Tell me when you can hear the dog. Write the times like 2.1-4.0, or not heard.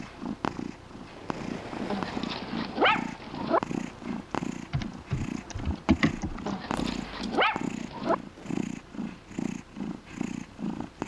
1.9-3.6, 6.5-8.2.